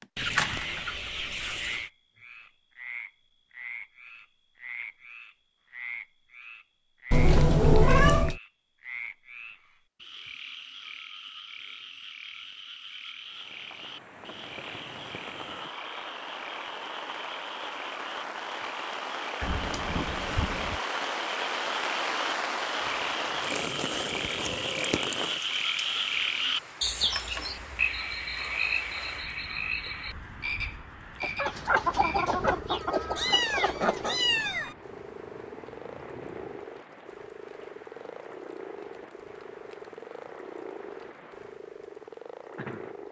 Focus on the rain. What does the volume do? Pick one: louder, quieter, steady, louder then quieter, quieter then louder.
louder then quieter.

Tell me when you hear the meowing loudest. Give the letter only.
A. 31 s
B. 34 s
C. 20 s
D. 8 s
D.